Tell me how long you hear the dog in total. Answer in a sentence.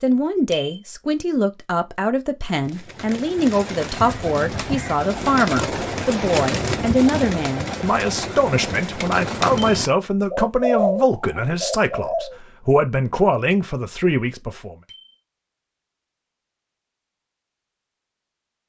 The dog can't be heard in this clip.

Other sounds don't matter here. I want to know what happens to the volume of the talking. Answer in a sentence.
The loudness of the talking stays about the same.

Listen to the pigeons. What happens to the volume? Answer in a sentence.
The loudness of the pigeons goes up.